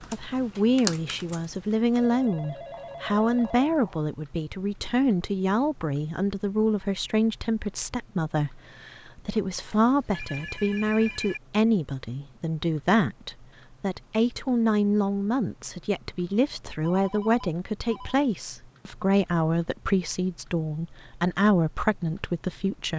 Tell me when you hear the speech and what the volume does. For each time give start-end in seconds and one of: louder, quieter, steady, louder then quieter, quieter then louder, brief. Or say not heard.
0.1-22.9 steady.